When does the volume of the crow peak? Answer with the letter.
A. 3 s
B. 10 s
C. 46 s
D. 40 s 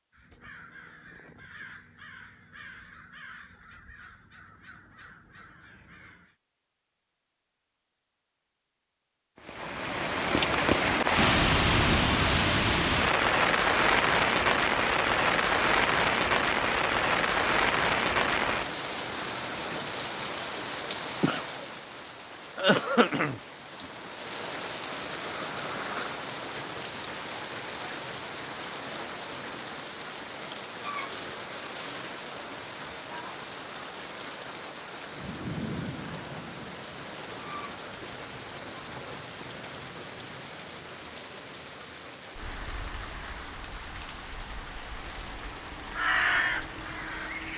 C.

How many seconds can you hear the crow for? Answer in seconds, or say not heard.
8 s.